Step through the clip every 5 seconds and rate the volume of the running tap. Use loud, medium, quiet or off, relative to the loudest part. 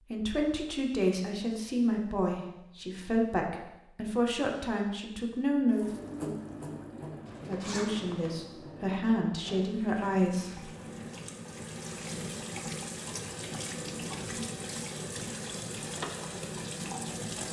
off, medium, loud, loud.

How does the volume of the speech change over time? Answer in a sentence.
The loudness of the speech stays about the same.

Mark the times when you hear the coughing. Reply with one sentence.
You can't hear the coughing here.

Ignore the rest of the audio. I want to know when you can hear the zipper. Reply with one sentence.
You can hear the zipper from 7.2 to 8.3 s.